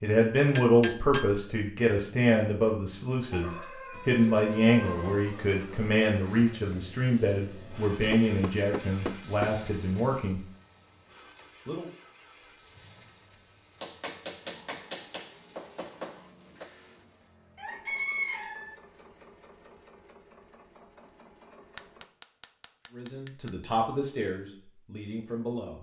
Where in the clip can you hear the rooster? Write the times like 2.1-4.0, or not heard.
3.3-5.2, 17.6-18.8.